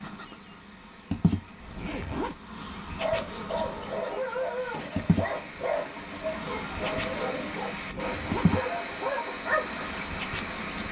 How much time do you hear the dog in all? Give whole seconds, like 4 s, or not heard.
7 s.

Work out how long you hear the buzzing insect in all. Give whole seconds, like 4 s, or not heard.
11 s.